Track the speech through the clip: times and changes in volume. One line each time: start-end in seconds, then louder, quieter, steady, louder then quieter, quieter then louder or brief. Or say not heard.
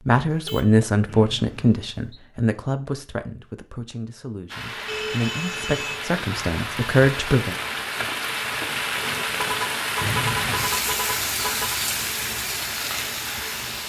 0.1-7.5 quieter then louder.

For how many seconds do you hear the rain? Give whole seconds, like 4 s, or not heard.
9 s.